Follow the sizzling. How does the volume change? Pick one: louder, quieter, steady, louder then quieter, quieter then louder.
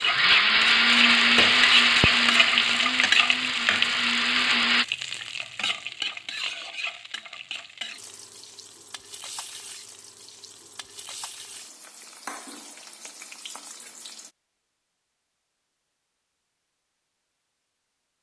quieter.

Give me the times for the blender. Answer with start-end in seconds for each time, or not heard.
0.0-4.8.